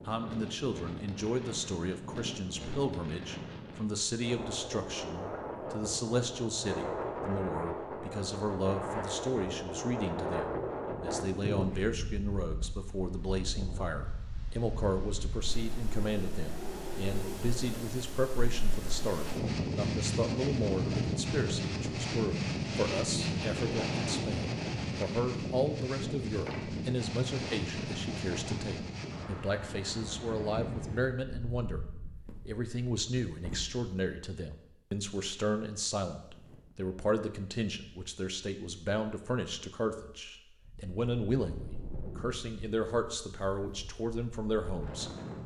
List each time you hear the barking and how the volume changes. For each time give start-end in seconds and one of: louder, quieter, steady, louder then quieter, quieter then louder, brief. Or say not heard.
not heard.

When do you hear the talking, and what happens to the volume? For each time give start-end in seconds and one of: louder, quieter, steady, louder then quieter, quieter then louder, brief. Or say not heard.
0.1-31.9 steady
32.5-45.1 steady.